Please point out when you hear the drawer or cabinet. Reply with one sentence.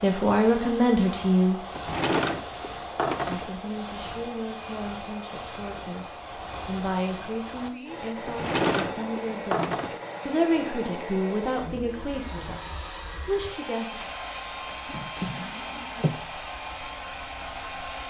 You can hear the drawer or cabinet from 1.8 to 3.5 s, from 8.2 to 10.1 s and from 14.8 to 16.2 s.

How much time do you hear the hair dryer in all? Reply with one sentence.
The hair dryer can be heard for 18 seconds in total.